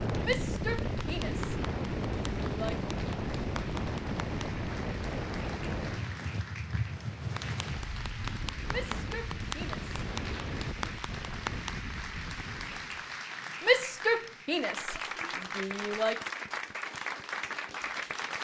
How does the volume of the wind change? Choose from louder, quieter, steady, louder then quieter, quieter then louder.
quieter.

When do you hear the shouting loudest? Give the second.
14 s.